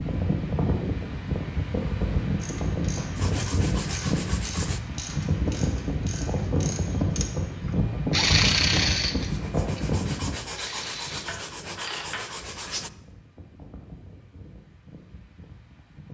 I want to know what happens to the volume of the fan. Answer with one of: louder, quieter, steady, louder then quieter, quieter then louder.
quieter.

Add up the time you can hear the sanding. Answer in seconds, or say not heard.
5 s.